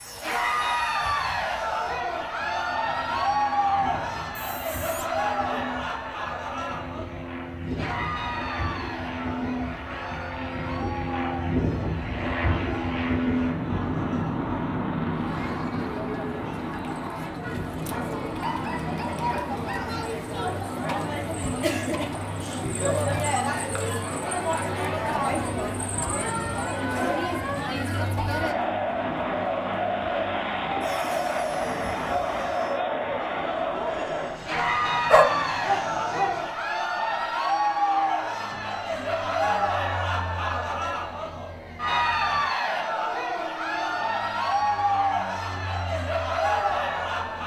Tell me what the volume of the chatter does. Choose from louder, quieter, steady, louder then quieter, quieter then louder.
quieter then louder.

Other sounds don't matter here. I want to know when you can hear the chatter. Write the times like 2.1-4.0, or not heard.
0.1-47.4.